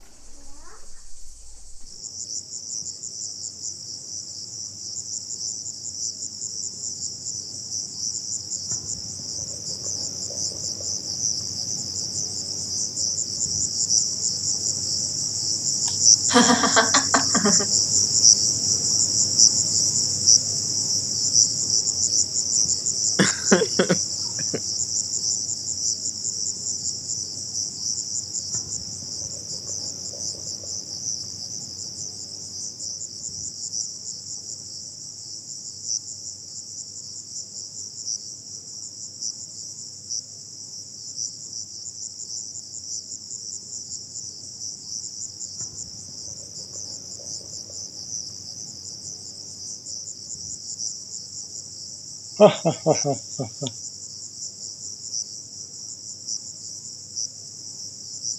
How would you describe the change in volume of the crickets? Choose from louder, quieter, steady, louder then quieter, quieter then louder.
louder then quieter.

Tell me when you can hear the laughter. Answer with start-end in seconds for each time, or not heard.
15.8-17.6, 23.1-24.6, 52.4-53.7.